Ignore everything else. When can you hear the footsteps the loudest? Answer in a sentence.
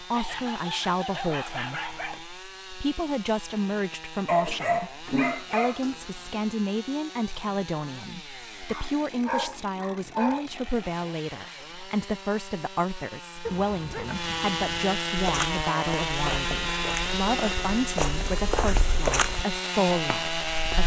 The loudest moment of the footsteps is at 19 seconds.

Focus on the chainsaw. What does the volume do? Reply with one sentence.
The volume of the chainsaw goes up.